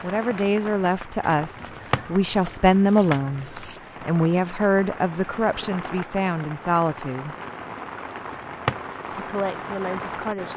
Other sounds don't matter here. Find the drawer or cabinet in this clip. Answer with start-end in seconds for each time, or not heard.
1.6-2.0, 8.4-8.8.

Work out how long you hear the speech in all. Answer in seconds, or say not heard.
9 s.